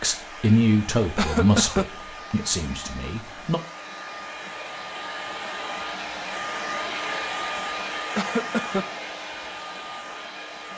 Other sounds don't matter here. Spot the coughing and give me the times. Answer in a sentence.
You can hear the coughing from 1.1 to 1.9 s and from 8.2 to 8.8 s.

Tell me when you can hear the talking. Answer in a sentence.
You can hear the talking from 0.0 to 3.6 s.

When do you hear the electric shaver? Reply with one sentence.
The electric shaver can't be heard in this clip.